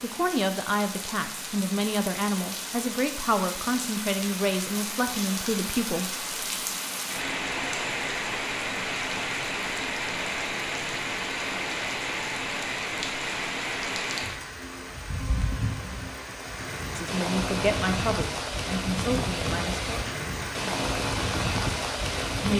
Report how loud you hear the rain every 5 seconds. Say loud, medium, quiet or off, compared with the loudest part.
medium, loud, loud, loud, loud.